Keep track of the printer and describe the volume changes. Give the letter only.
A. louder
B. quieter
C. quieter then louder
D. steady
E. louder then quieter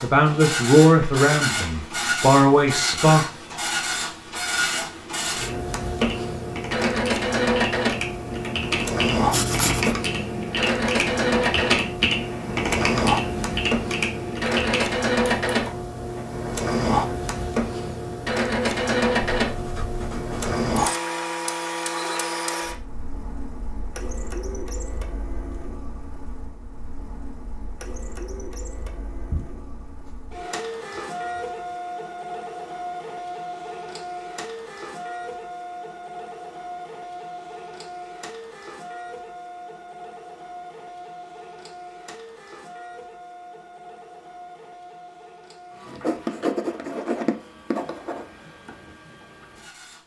B.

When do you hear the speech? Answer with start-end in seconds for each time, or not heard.
0.0-3.2.